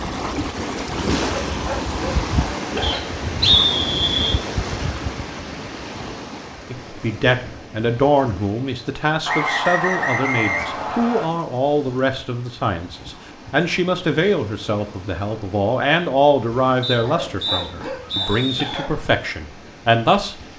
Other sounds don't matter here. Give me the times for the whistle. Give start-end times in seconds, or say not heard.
2.8-4.4, 9.2-11.2, 16.8-18.9.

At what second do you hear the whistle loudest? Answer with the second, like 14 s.
4 s.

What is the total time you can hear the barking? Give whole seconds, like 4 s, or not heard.
4 s.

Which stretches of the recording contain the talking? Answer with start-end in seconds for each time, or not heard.
6.7-20.4.